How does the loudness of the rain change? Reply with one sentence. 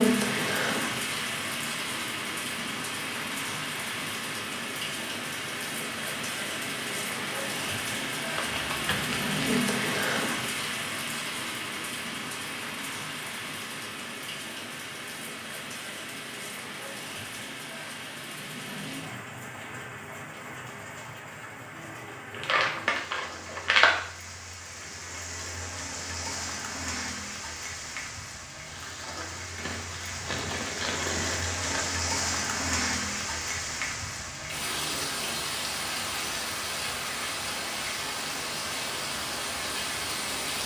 The volume of the rain goes down, then up.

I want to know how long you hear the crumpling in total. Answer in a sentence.
You can hear the crumpling for 5 seconds altogether.